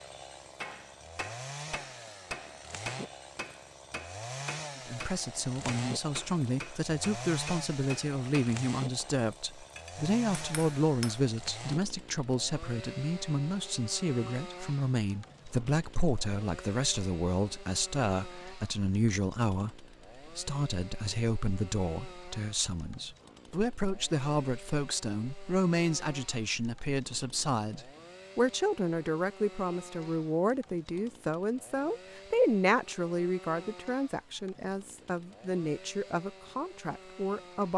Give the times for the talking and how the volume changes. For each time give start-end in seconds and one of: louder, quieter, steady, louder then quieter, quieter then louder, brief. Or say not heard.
4.8-37.7 steady.